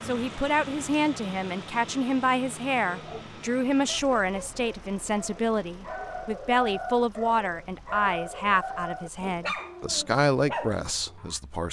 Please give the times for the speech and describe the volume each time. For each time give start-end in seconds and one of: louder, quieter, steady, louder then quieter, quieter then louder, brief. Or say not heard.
0.0-11.6 steady.